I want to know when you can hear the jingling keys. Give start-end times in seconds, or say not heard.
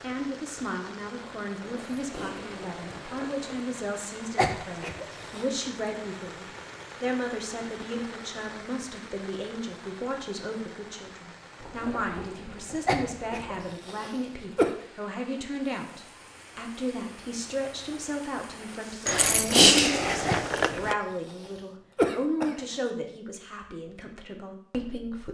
1.6-3.6, 11.6-13.7, 19.1-20.9.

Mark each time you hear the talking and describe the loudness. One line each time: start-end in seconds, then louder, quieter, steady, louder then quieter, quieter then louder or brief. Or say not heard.
0.0-25.2 steady.